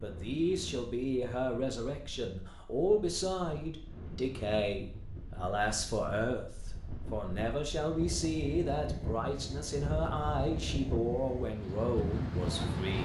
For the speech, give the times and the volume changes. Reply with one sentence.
You can hear the speech from 0.0 to 12.9 s, at a steady volume.